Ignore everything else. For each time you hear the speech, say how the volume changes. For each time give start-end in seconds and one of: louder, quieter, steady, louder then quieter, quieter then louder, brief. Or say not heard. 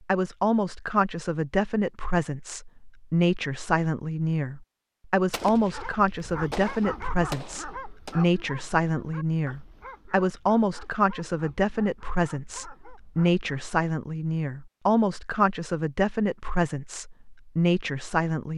0.1-18.5 steady.